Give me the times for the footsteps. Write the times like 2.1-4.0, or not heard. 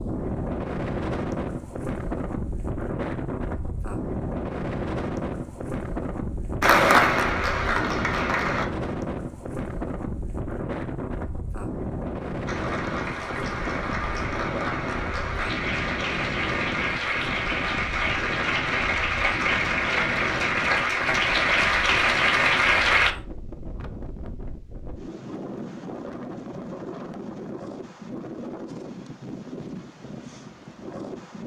not heard.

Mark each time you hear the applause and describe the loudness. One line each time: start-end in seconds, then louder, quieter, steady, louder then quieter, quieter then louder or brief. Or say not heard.
6.6-8.7 brief
12.4-23.1 louder.